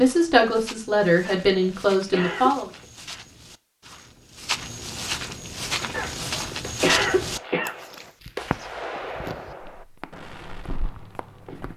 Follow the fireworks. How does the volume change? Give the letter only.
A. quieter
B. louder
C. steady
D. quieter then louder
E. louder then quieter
E.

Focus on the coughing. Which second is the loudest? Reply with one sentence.
The loudest moment of the coughing is at 7 seconds.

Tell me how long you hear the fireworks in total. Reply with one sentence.
The fireworks can be heard for 6 seconds in total.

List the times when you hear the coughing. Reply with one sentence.
You can hear the coughing from 1.2 to 2.9 s and from 5.9 to 7.8 s.